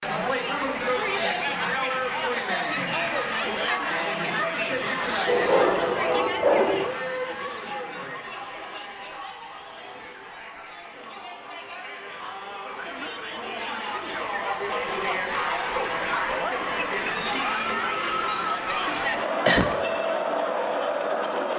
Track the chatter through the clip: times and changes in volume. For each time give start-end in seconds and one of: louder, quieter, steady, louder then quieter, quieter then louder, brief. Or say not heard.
0.0-21.5 quieter then louder.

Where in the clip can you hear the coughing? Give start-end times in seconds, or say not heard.
19.0-19.7.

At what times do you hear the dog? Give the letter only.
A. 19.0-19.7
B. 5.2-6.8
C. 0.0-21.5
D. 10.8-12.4
B.